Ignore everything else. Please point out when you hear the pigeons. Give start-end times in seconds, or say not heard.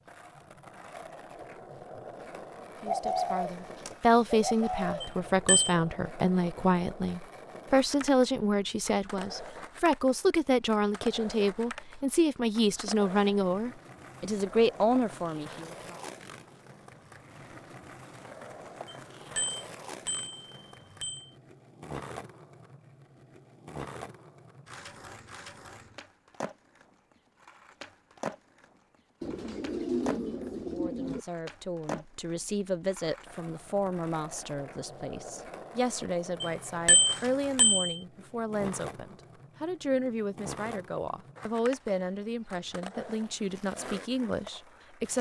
2.9-5.1, 29.2-31.2.